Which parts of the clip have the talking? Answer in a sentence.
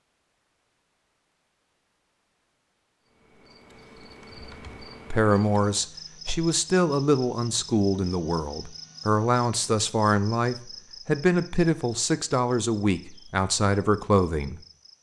The talking can be heard from 5.1 to 14.6 s.